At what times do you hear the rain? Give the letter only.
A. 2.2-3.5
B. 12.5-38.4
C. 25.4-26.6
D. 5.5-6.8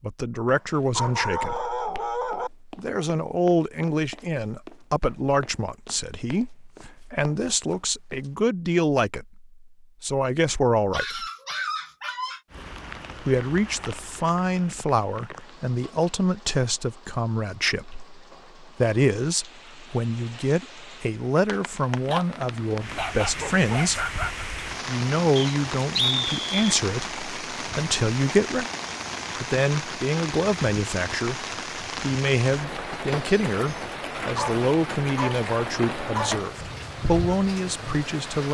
B.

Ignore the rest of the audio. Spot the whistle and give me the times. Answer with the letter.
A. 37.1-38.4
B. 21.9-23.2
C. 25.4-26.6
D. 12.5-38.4
C.